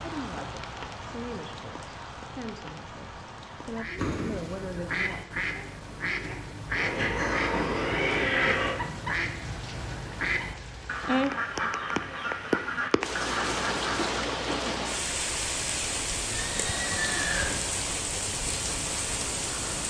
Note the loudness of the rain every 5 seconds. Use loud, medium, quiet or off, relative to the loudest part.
medium, quiet, loud, loud.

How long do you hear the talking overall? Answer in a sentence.
You can hear the talking for 5 seconds altogether.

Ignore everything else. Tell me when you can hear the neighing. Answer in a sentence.
The neighing can be heard from 4.0 to 4.8 s, from 6.8 to 8.8 s and from 16.3 to 17.9 s.